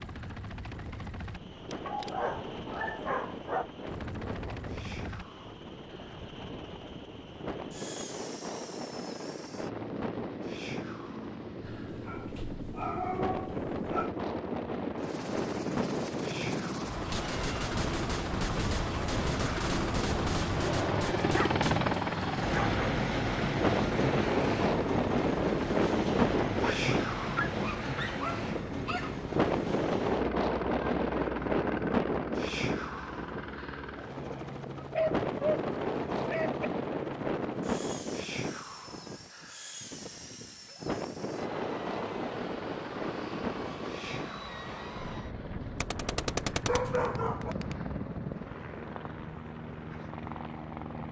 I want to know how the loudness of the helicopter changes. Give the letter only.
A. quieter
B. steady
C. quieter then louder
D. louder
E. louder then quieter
E.